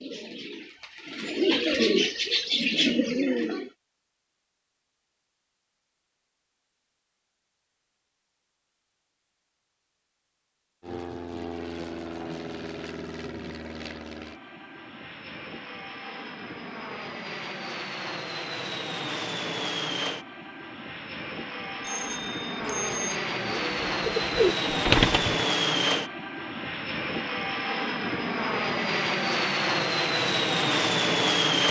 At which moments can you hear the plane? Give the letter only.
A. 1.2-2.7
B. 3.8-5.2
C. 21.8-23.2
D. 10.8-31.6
D.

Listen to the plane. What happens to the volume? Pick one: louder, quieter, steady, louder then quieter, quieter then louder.
louder.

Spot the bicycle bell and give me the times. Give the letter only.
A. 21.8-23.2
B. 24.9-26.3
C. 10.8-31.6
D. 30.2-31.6
A.